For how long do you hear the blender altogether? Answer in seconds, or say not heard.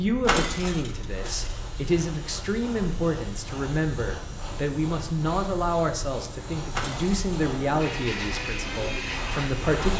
2 s.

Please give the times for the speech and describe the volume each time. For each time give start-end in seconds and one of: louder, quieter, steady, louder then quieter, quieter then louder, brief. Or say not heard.
0.0-9.9 steady.